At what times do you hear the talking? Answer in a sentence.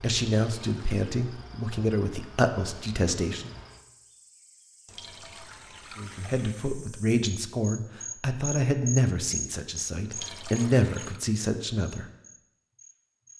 You can hear the talking from 0.0 to 3.5 s and from 6.0 to 12.1 s.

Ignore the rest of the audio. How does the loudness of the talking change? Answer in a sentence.
The loudness of the talking stays about the same.